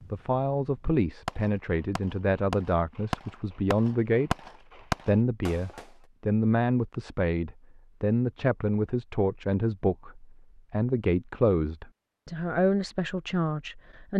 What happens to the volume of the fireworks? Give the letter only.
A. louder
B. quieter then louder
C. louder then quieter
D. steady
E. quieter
B.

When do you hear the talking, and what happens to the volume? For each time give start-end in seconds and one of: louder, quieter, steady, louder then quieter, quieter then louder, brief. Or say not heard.
0.1-4.3 steady
5.0-14.1 steady.